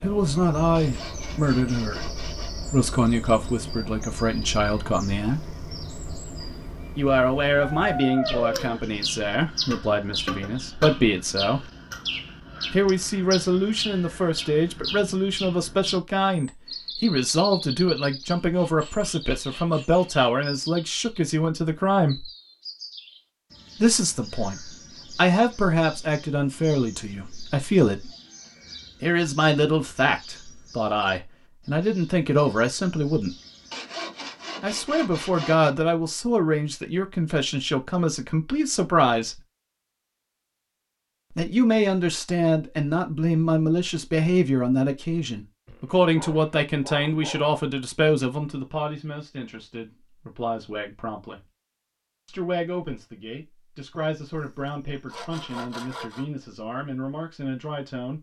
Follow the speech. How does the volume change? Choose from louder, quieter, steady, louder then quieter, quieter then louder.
quieter.